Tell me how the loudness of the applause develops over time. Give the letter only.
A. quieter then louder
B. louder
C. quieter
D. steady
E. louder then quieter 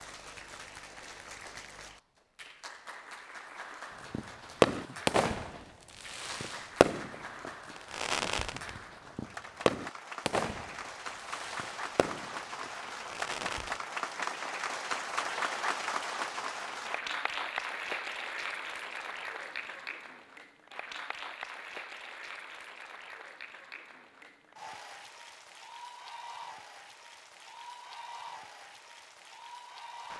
E.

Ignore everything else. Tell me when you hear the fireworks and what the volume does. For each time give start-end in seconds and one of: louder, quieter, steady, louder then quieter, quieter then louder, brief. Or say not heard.
4.1-13.8 quieter.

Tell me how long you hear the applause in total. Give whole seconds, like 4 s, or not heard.
30 s.